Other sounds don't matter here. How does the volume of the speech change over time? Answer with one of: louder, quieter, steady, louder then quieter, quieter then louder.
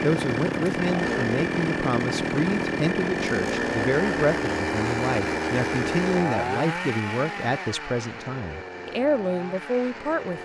steady.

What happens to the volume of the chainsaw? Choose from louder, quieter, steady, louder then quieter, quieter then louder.
quieter.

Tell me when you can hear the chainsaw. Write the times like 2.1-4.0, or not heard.
0.0-10.4.